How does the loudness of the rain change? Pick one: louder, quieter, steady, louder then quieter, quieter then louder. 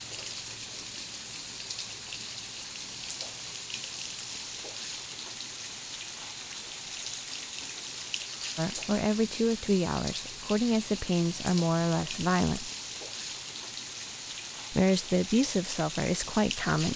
steady.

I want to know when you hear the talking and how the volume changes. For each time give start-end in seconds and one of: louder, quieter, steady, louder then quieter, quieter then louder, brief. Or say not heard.
8.6-12.7 steady
14.7-16.9 brief.